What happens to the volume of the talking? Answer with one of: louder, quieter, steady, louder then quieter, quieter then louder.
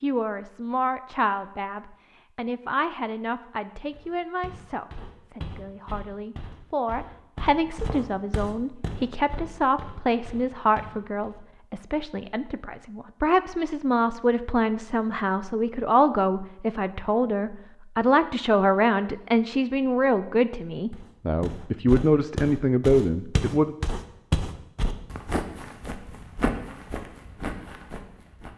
louder.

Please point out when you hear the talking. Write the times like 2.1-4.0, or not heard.
0.0-23.8.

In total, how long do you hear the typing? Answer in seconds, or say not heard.
not heard.